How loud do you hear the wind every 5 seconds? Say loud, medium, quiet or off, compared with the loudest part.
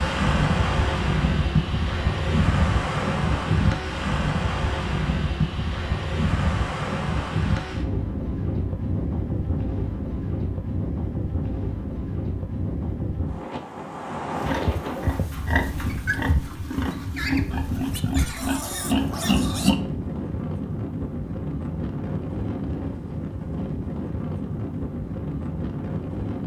loud, loud, medium, medium, medium, medium.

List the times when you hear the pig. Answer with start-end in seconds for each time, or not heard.
14.4-19.8.